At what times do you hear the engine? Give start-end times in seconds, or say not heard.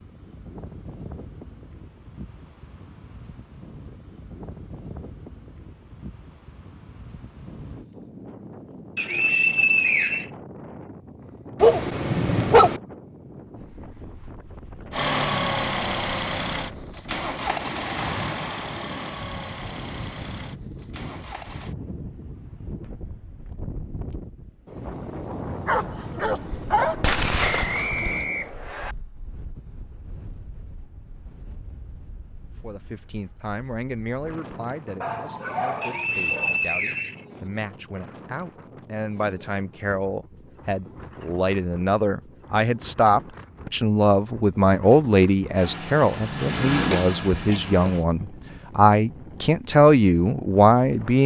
14.9-21.8, 45.5-48.0.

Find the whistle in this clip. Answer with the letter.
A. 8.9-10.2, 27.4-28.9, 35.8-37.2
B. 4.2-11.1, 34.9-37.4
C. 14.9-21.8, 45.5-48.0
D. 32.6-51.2
A.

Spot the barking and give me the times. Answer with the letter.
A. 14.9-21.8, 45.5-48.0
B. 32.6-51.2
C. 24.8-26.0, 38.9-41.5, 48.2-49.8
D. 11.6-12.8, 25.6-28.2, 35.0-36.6
D.